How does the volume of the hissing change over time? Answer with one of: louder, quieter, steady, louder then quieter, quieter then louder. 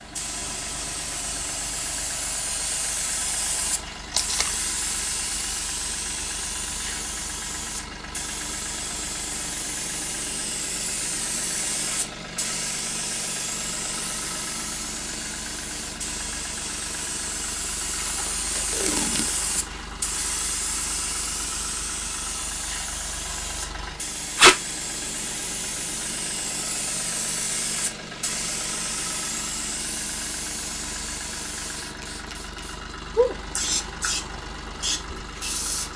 steady.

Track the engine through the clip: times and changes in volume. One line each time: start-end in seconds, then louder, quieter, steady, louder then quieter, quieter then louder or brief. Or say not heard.
0.0-35.9 steady.